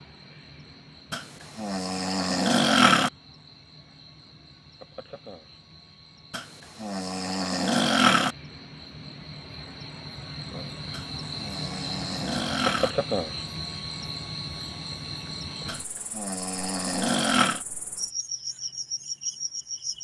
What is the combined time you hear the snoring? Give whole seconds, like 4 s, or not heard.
8 s.